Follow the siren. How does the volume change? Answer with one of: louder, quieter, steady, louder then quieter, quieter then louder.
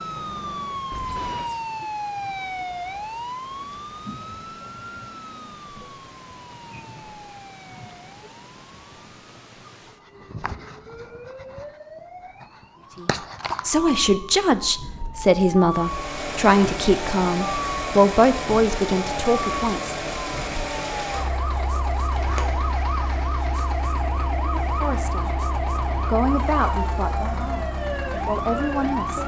quieter then louder.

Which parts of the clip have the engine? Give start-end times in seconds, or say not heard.
15.7-29.2.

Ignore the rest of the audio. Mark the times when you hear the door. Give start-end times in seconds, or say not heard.
22.1-22.7.